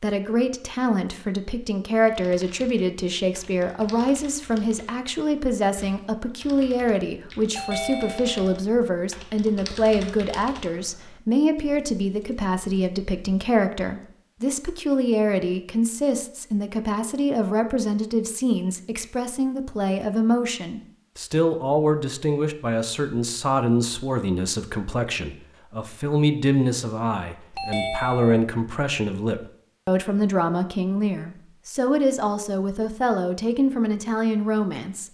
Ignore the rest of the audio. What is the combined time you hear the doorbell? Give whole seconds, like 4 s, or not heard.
2 s.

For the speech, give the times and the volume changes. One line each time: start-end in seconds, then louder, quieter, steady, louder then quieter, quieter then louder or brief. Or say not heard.
0.0-35.1 steady.